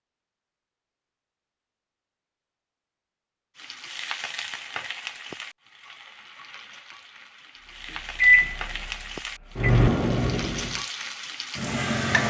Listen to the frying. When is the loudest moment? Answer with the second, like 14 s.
12 s.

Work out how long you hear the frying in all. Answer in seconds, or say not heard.
9 s.